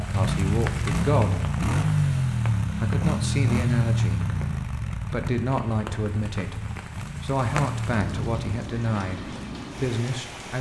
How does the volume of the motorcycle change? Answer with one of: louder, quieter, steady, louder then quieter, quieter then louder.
quieter.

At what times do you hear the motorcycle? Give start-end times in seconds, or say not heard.
0.0-8.6.